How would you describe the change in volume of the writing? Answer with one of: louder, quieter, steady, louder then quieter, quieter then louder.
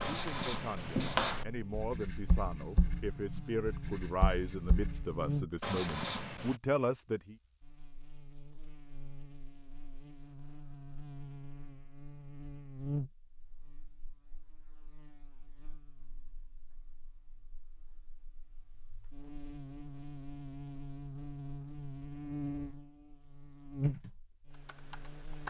quieter then louder.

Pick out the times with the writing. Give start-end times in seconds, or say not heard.
0.0-6.5.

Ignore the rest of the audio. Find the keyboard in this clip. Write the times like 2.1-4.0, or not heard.
23.8-25.4.